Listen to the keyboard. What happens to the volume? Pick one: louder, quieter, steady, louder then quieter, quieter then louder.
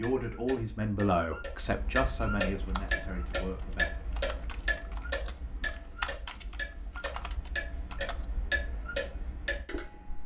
louder then quieter.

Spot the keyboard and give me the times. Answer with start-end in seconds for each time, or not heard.
2.6-8.2.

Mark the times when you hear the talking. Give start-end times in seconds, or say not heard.
0.0-4.0.